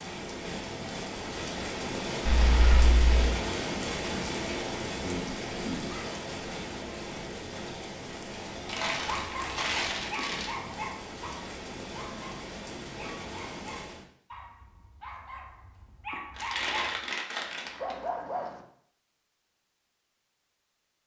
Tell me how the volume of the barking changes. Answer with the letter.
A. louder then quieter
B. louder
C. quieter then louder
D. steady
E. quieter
C.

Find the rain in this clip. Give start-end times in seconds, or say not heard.
0.0-14.1.